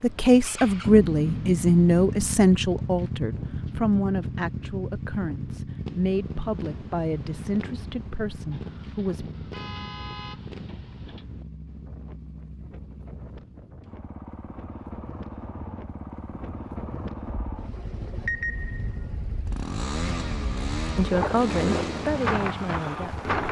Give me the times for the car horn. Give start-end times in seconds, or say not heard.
8.5-11.2.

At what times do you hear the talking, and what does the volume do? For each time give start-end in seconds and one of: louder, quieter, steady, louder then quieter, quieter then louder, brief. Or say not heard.
0.0-9.2 quieter
20.9-23.2 brief.